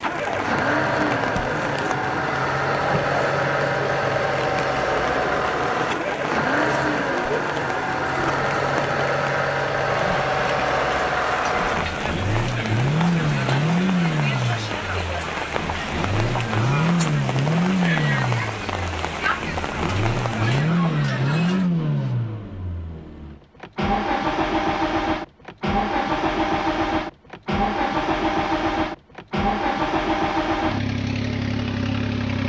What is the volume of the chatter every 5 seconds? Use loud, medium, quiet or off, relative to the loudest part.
loud, loud, loud, loud, loud, off, off.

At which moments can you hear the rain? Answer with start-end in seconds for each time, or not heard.
0.0-20.6.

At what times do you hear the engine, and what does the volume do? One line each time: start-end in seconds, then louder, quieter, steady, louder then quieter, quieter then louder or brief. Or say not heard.
0.0-32.4 steady.